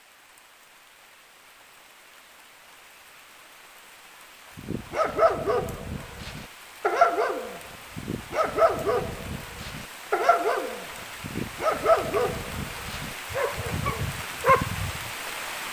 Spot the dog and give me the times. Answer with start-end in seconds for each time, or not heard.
4.5-15.1.